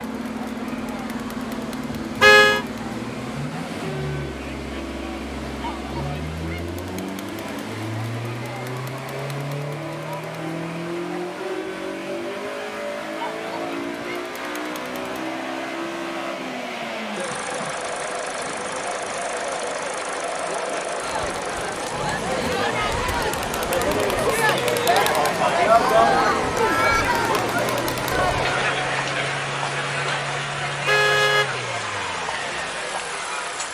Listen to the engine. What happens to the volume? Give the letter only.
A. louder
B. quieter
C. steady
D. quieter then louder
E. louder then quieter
C.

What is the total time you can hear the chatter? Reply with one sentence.
You can hear the chatter for 34 seconds altogether.